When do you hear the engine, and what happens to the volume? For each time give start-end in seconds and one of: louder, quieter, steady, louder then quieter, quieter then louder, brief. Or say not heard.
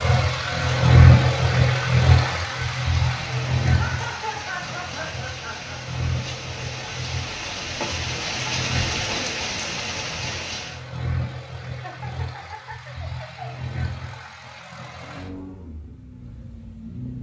0.0-17.1 quieter.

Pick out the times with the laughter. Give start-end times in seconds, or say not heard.
3.8-5.8, 11.8-13.6.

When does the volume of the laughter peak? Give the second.
4 s.